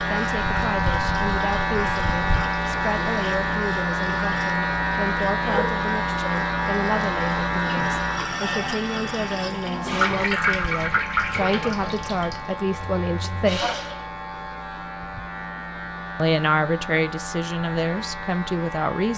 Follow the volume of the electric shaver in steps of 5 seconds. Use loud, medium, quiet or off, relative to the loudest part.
loud, loud, medium, medium.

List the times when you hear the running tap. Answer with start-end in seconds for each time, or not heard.
0.0-14.1.